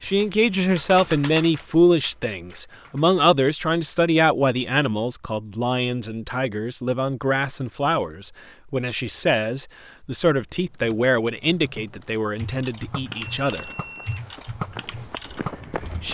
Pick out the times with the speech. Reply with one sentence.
You can hear the speech from 0.0 to 13.7 s.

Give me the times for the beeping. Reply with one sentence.
You can hear the beeping from 13.2 to 14.5 s.